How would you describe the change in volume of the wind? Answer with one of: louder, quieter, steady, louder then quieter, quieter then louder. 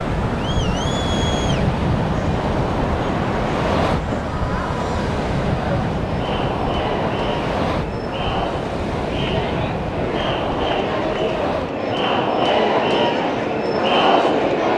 quieter.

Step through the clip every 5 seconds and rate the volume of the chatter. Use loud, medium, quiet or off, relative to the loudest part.
medium, medium, loud.